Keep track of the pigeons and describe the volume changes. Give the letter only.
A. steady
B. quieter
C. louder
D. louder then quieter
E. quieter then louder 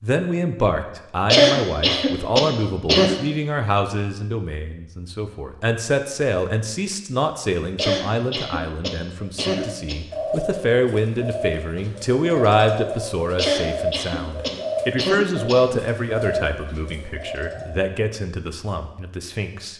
A.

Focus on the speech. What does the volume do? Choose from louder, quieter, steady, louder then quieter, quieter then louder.
steady.